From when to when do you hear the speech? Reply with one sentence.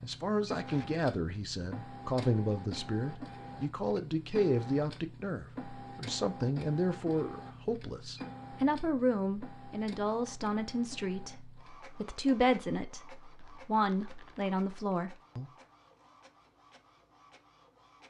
You can hear the speech from 0.0 to 15.5 s.